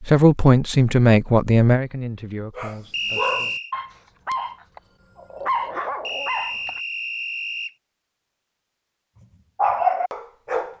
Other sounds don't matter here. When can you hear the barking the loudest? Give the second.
10 s.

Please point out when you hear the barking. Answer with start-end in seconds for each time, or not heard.
2.5-6.8, 9.6-10.7.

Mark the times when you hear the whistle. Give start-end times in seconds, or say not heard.
2.9-3.8, 6.0-7.8.